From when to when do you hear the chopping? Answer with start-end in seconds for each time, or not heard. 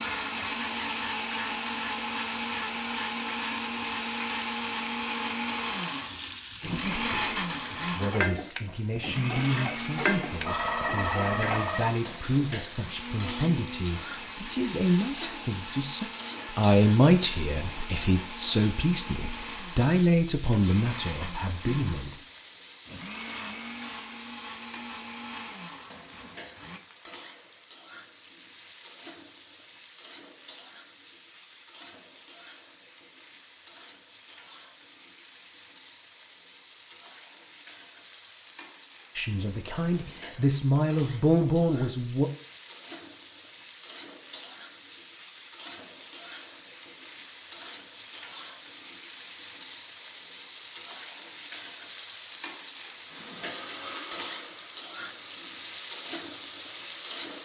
not heard.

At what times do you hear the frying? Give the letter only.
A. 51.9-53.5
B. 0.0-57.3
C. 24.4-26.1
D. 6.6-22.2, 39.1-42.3
B.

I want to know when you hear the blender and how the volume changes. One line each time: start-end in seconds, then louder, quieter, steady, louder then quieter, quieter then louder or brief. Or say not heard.
0.0-26.8 quieter
53.1-57.2 quieter.